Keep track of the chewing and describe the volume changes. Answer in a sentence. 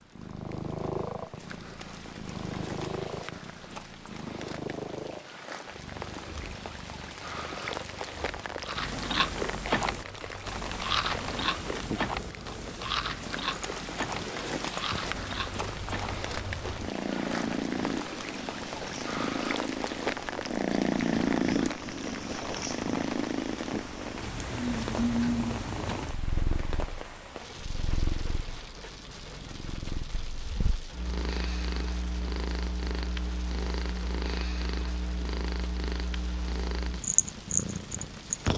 The volume of the chewing goes down.